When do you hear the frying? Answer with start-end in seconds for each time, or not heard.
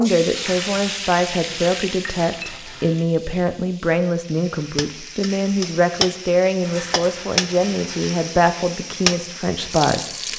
0.0-10.3.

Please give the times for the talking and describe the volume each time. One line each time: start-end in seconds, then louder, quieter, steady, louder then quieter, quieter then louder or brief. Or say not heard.
0.0-10.1 steady.